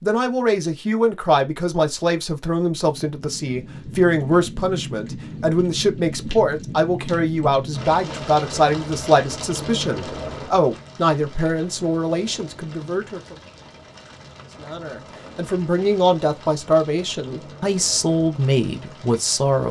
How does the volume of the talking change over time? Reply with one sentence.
The loudness of the talking stays about the same.